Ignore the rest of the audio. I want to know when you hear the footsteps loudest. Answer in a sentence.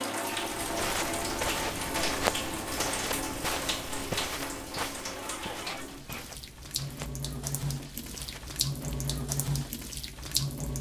The volume of the footsteps peaks at 2 seconds.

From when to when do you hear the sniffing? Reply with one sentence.
The sniffing can be heard from 5.0 to 6.2 s.